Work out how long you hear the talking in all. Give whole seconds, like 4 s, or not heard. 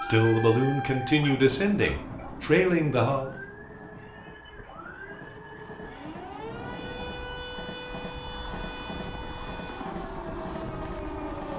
3 s.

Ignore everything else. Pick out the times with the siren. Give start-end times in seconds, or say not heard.
0.0-11.5.